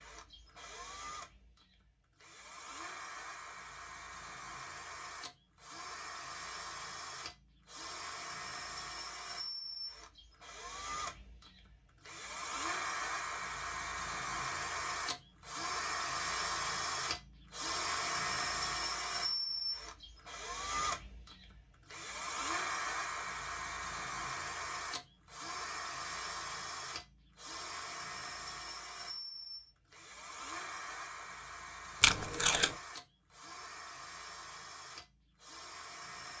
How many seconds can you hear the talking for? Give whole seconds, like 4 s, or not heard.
not heard.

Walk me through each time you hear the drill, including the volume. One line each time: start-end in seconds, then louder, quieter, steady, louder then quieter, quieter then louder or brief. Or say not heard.
0.0-36.3 louder then quieter.